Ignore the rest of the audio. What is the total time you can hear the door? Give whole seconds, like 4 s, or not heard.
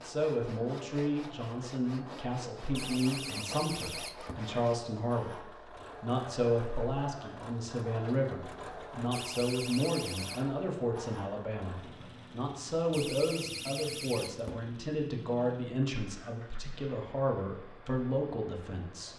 5 s.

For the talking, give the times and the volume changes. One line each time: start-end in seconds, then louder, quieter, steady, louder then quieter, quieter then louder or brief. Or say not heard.
0.0-19.1 steady.